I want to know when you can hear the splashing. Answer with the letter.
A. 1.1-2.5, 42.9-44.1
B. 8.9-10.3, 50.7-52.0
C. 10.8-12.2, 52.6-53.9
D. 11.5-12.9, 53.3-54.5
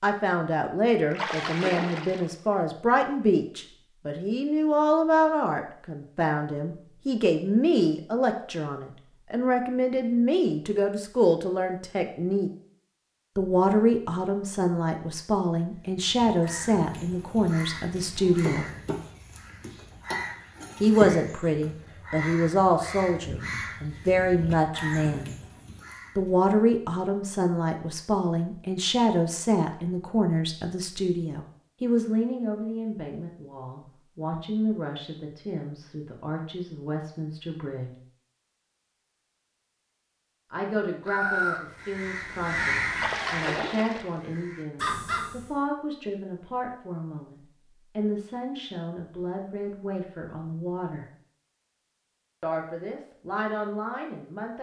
A.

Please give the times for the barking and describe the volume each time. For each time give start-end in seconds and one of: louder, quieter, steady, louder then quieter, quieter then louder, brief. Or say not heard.
not heard.